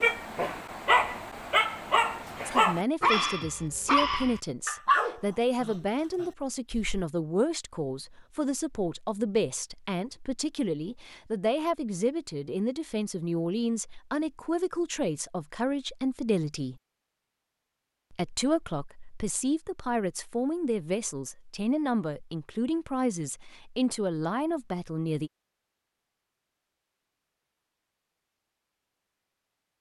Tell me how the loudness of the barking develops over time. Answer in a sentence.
The loudness of the barking stays about the same.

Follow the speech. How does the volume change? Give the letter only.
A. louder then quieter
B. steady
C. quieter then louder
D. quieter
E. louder
B.